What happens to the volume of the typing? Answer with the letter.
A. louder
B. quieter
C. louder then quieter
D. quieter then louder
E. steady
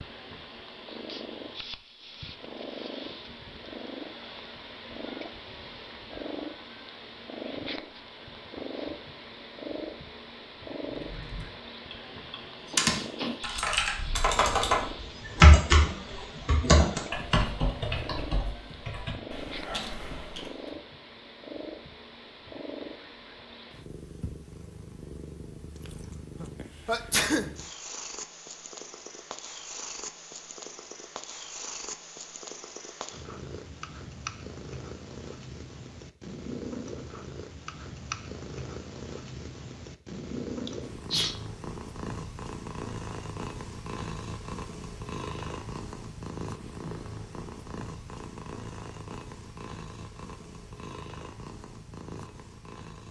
C.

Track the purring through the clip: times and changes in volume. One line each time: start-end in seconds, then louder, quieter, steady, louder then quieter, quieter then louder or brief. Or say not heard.
0.0-53.0 steady.